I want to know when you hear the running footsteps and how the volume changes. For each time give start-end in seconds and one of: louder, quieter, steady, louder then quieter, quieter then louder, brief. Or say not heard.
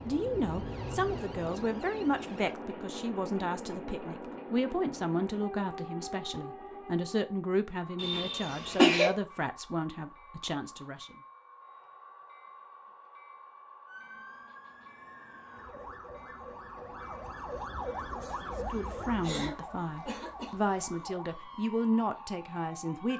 not heard.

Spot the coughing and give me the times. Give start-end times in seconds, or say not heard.
8.0-9.2, 19.2-21.1.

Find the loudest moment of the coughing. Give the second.
9 s.